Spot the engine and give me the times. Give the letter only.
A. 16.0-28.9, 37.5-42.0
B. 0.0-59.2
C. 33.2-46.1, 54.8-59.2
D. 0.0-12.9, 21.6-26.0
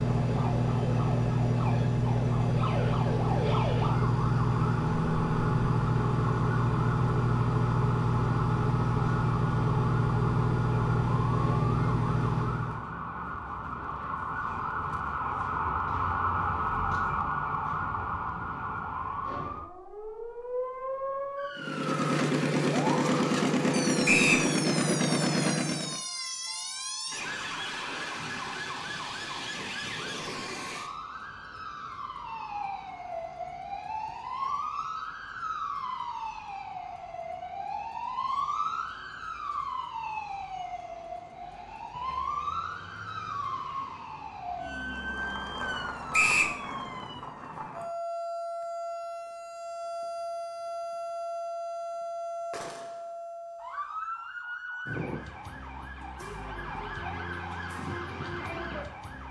D.